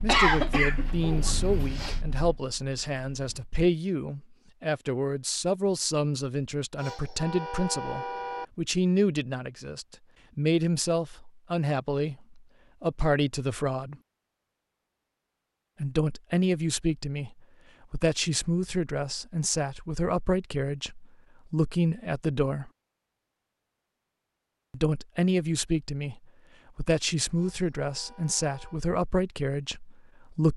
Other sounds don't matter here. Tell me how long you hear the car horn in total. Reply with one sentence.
You can hear the car horn for 3 seconds altogether.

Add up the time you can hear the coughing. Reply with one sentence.
You can hear the coughing for 2 seconds altogether.